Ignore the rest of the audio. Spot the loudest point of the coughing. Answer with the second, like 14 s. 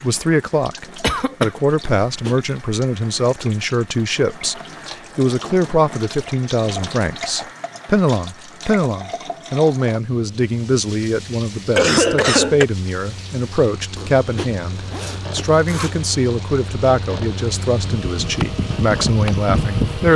12 s.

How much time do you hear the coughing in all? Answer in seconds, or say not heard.
2 s.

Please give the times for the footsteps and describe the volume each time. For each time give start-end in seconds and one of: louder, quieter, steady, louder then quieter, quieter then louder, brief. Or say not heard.
not heard.